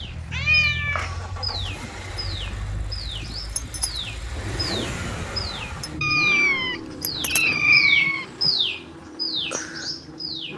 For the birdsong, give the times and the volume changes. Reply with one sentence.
The birdsong can be heard from 0.0 to 10.5 s, getting louder.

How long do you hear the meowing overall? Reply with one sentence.
You can hear the meowing for 4 seconds altogether.